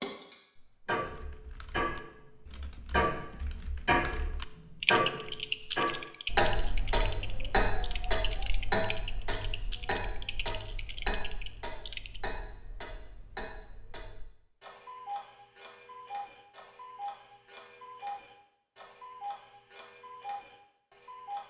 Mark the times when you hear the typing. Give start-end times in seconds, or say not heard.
1.1-12.2.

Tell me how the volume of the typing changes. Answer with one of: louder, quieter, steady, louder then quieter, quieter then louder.
louder then quieter.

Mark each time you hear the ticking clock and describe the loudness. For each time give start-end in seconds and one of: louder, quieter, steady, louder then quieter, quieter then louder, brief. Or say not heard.
0.0-21.4 quieter.